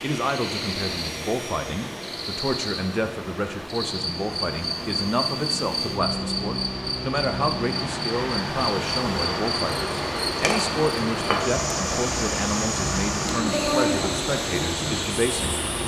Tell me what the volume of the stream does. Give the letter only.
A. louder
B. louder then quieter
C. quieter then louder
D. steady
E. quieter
A.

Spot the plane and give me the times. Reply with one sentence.
You can hear the plane from 0.0 to 15.8 s.